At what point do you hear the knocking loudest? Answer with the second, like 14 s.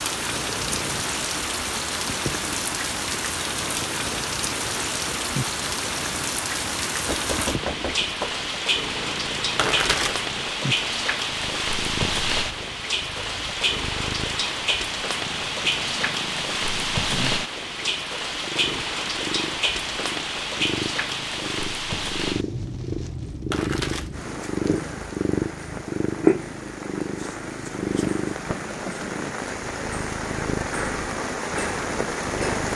8 s.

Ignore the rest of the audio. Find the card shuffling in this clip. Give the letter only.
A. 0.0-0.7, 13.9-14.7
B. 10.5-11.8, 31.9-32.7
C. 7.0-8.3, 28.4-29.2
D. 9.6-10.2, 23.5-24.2
D.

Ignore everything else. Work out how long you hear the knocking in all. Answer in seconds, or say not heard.
2 s.